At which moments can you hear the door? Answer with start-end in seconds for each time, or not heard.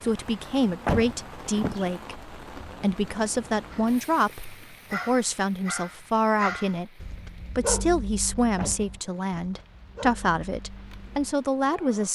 0.8-1.9, 8.6-9.2.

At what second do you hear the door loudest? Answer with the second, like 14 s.
1 s.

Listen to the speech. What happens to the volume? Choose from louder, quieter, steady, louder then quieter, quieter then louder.
steady.